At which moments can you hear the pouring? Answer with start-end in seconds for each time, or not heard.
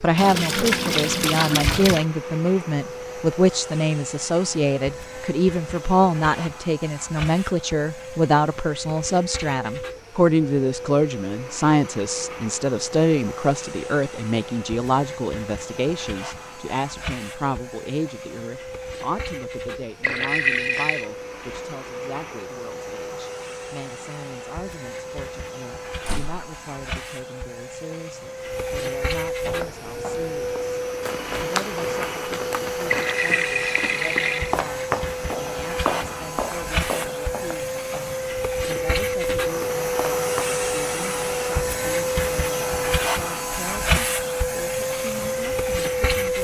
0.1-2.0, 20.0-21.1, 32.9-34.5.